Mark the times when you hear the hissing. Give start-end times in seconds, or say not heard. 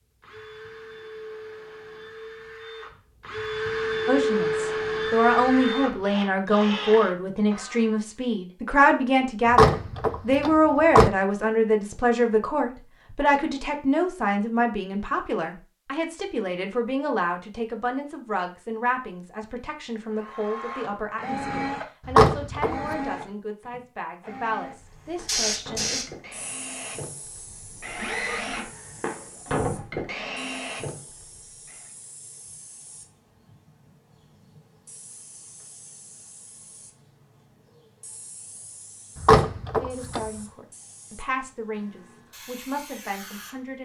25.2-43.7.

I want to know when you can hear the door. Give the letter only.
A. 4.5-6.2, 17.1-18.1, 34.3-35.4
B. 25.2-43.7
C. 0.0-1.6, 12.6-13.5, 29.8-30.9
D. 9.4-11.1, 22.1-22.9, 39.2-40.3
D.